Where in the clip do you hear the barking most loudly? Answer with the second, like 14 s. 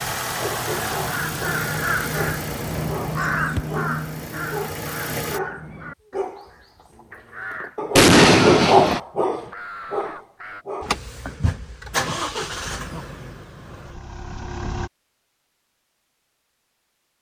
9 s.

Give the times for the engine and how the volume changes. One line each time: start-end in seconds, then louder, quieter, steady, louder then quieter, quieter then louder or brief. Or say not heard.
0.0-5.4 quieter then louder
10.8-14.9 louder then quieter.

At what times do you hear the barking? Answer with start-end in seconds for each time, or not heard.
0.3-10.9.